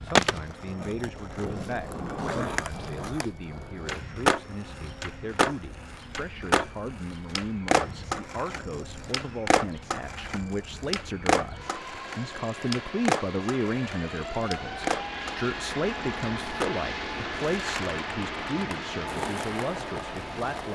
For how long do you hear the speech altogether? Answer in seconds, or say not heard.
21 s.